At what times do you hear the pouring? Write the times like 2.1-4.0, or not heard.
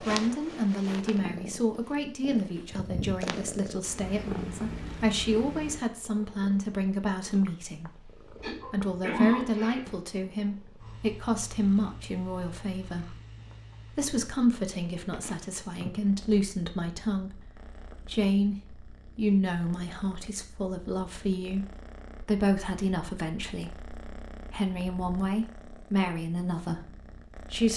not heard.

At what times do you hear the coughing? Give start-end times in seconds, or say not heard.
8.3-10.0.